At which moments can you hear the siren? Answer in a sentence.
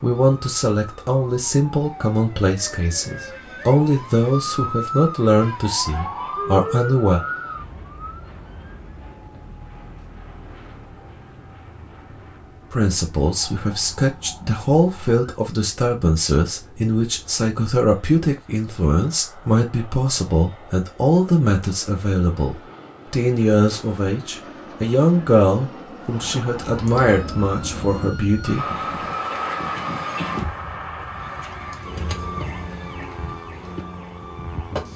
The siren can be heard from 0.1 to 15.2 s and from 26.1 to 34.9 s.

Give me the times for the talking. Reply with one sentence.
You can hear the talking from 0.0 to 7.2 s and from 12.7 to 28.7 s.